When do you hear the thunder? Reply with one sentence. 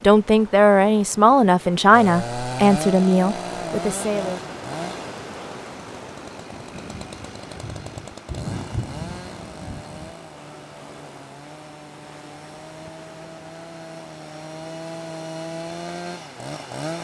You can hear the thunder from 6.5 to 10.2 s.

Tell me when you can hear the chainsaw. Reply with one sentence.
The chainsaw can be heard from 1.9 to 16.9 s.